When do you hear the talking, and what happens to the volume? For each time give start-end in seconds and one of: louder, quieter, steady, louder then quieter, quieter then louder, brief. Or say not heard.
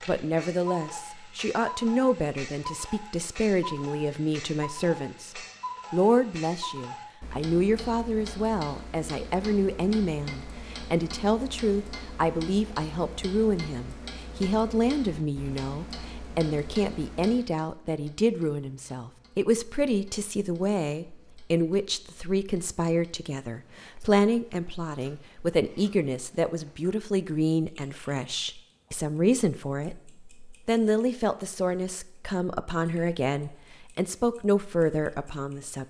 0.1-35.8 steady.